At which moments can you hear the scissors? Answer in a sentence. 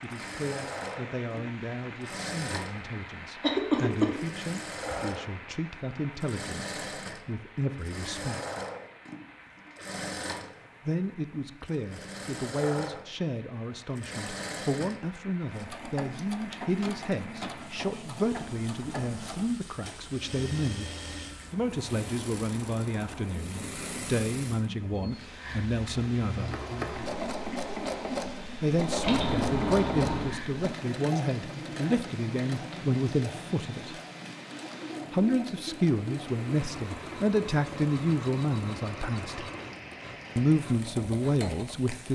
The scissors can be heard from 29.0 to 30.4 s.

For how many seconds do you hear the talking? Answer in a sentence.
You can hear the talking for 35 seconds altogether.